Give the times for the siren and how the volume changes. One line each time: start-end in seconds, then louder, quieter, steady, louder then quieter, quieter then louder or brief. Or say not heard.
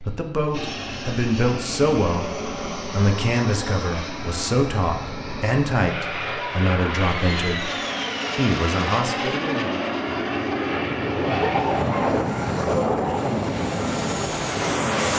not heard.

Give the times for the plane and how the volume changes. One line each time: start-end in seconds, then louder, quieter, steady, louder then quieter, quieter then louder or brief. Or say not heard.
0.0-15.1 louder.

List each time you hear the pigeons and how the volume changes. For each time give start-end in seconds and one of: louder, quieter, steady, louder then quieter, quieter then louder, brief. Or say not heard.
not heard.